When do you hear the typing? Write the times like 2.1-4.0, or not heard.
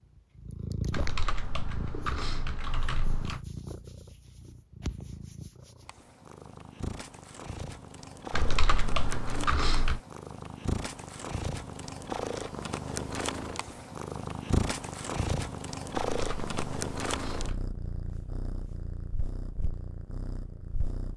0.9-3.4, 8.3-10.0, 16.1-17.6.